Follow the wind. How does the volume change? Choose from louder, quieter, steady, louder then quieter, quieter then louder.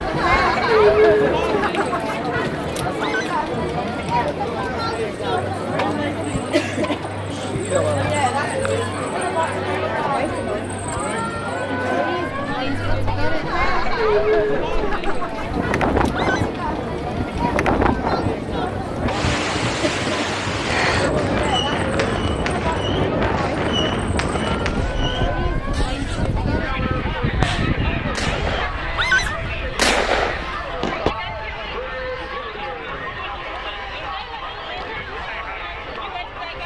quieter.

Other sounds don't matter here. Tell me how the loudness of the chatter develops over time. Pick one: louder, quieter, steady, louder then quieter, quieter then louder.
quieter.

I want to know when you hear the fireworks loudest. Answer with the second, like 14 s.
30 s.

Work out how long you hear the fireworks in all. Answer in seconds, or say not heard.
8 s.